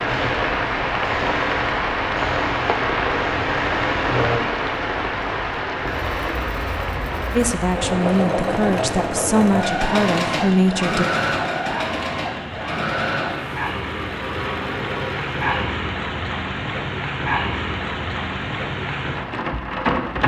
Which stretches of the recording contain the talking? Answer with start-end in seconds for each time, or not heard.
7.3-11.1.